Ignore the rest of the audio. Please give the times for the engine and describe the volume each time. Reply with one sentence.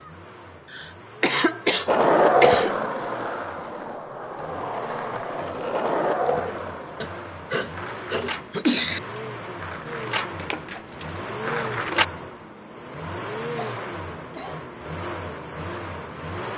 The engine can be heard from 0.0 to 16.5 s, getting louder.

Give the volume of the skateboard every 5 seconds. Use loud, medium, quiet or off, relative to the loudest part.
loud, medium, medium, off.